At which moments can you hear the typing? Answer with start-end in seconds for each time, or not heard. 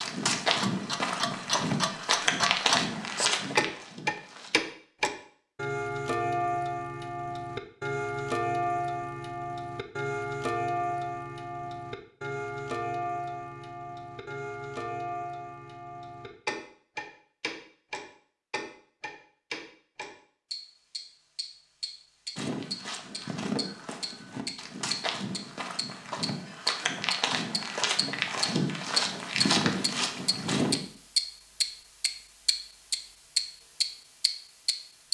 not heard.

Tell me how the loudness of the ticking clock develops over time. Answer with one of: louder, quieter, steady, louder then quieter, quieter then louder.
quieter then louder.